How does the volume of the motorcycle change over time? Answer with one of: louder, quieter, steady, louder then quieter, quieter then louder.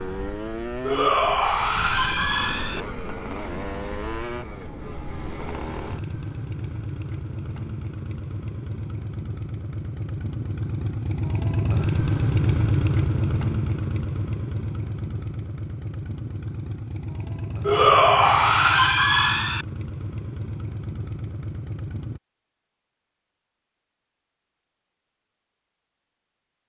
louder then quieter.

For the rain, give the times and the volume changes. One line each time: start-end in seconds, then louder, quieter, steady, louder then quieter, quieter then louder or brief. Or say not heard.
not heard.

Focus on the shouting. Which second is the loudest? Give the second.
18 s.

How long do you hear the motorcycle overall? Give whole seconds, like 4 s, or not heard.
22 s.